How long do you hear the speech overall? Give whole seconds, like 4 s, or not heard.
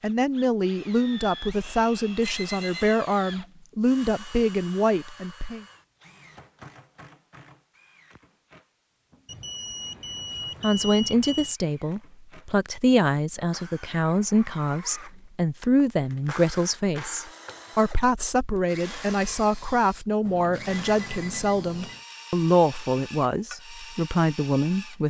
20 s.